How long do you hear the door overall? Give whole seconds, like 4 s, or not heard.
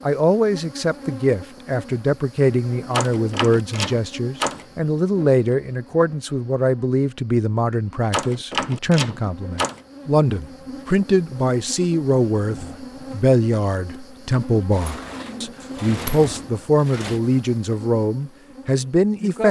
6 s.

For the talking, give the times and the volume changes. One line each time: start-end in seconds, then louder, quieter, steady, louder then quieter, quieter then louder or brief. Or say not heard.
0.1-19.4 steady.